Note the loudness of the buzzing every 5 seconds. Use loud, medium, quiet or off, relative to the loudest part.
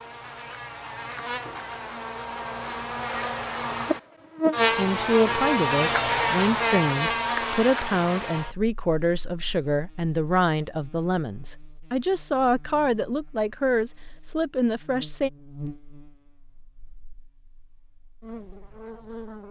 loud, loud, quiet, quiet.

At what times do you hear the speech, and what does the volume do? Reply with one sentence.
The speech can be heard from 4.8 to 15.3 s, at a steady volume.